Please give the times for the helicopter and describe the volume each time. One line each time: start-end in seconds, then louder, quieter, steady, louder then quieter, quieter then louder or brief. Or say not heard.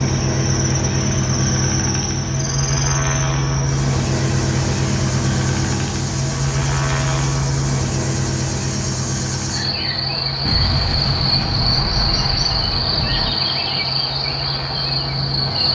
0.0-15.6 quieter.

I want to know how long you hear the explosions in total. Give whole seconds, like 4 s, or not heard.
3 s.